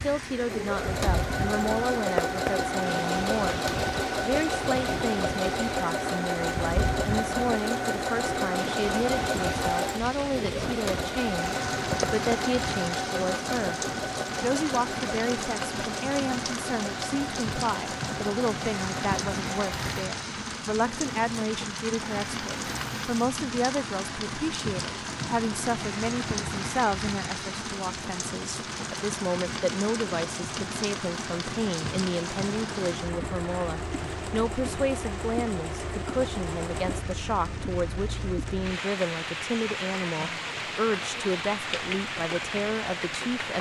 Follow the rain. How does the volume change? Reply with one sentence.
The volume of the rain stays about the same.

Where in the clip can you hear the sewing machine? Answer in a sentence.
The sewing machine can be heard from 0.0 to 37.0 s.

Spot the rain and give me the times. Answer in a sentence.
You can hear the rain from 0.0 to 43.5 s.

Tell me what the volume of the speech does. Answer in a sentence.
The loudness of the speech stays about the same.